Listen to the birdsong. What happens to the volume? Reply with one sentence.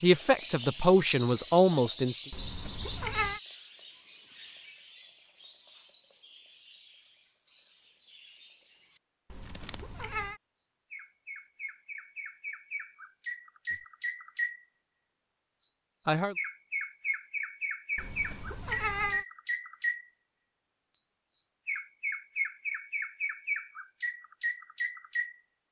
The loudness of the birdsong goes down, then up.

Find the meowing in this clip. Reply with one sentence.
The meowing can be heard from 2.3 to 3.4 s, from 9.3 to 10.4 s and from 17.9 to 19.2 s.